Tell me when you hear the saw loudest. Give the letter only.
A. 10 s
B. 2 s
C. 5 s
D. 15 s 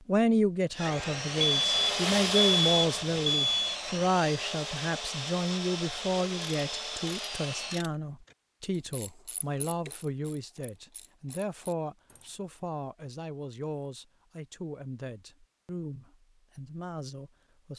B.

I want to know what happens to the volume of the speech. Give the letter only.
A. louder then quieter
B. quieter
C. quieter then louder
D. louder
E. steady
B.